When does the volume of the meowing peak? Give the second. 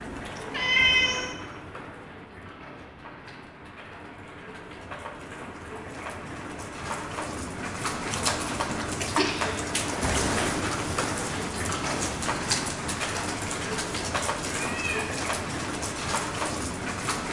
1 s.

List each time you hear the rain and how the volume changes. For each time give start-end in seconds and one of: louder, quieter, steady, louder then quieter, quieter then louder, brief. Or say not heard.
0.0-17.2 louder.